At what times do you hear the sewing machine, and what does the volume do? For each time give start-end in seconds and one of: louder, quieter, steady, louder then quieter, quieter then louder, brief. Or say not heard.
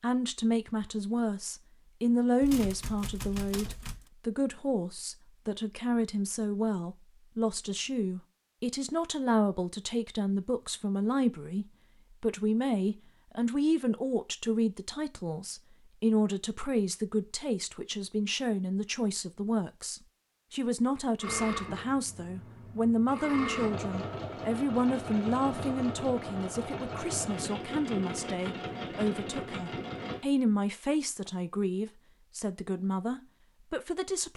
21.2-30.2 louder.